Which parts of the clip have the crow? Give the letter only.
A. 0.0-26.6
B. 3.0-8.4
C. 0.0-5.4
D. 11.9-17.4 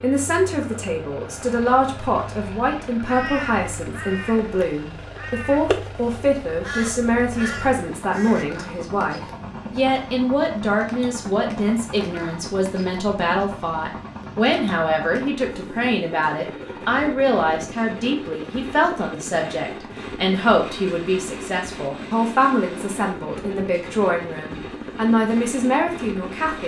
B.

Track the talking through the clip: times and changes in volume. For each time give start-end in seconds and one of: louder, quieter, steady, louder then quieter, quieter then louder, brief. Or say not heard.
0.0-26.6 steady.